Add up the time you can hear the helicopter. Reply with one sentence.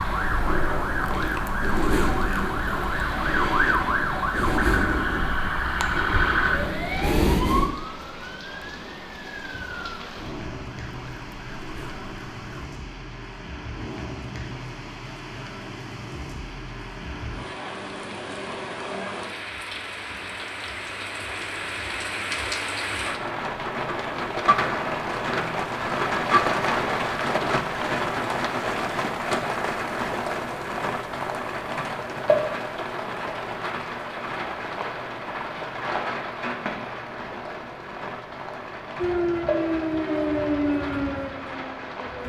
You can't hear the helicopter here.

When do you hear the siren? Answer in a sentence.
You can hear the siren from 0.0 to 12.7 s and from 39.0 to 42.2 s.